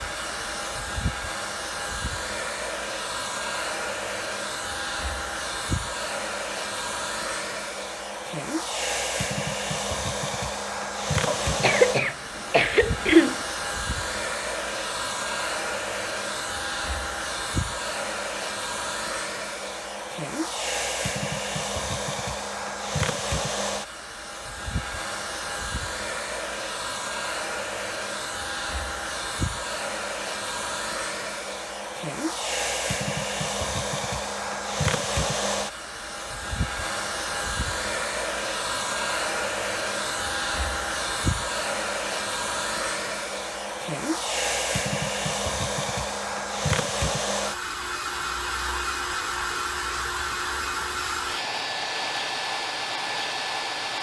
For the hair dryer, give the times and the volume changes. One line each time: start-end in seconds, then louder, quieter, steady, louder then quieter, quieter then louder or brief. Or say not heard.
0.0-53.9 steady.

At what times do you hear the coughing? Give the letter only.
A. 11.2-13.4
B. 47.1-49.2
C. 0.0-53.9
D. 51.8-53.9
A.